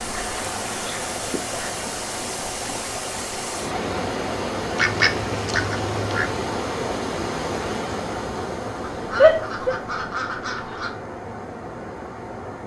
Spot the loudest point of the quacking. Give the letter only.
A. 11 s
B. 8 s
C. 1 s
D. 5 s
D.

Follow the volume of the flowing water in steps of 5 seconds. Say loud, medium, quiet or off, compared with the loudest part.
loud, loud, medium.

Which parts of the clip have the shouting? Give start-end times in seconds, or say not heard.
9.2-9.8.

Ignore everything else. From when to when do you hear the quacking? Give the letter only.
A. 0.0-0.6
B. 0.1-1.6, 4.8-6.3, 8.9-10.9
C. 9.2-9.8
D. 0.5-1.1
B.